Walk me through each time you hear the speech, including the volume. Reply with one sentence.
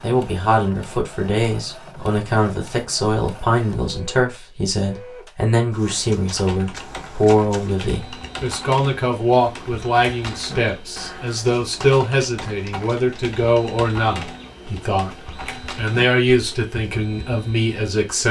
The speech can be heard from 0.0 to 15.1 s, at a steady volume; and briefly from 15.8 to 18.2 s.